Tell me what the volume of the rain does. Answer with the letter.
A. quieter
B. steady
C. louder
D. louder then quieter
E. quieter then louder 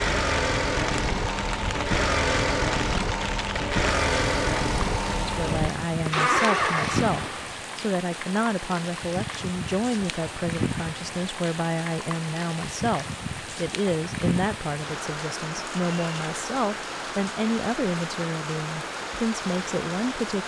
B.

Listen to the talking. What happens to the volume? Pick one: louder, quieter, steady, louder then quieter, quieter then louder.
steady.